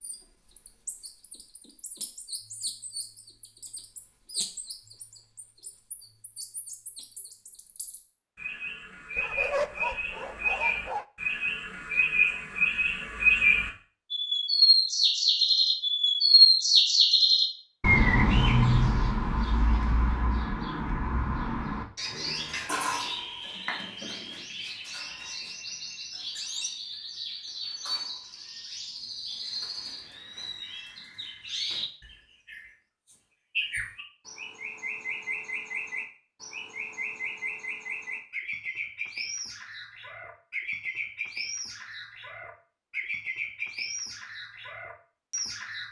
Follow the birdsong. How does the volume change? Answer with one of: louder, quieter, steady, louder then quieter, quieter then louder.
louder then quieter.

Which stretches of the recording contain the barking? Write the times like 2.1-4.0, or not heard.
9.2-11.1.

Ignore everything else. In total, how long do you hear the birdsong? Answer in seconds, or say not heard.
46 s.